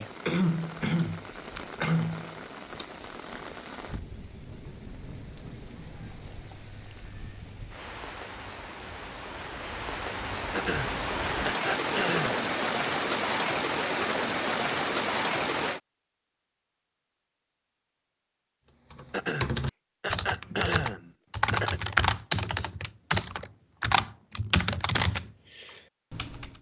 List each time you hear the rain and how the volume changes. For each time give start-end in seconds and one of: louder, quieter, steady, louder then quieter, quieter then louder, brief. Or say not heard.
0.0-15.8 louder.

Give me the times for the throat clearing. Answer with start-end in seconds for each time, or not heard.
0.2-2.4, 10.6-12.4, 19.1-21.8.